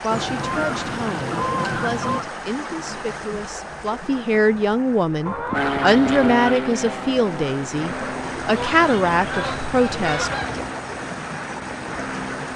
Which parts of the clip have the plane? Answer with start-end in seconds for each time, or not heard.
5.5-12.5.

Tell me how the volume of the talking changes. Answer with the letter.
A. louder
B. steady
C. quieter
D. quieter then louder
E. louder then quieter
A.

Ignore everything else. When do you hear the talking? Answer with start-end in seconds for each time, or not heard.
0.0-10.3.